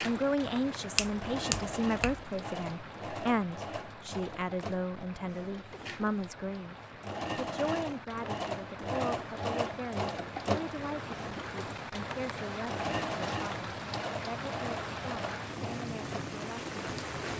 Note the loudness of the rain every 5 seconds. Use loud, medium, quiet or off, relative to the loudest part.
medium, medium, loud, loud.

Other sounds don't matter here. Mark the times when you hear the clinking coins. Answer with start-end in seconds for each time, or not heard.
not heard.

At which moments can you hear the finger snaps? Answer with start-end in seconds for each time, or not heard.
0.9-2.2.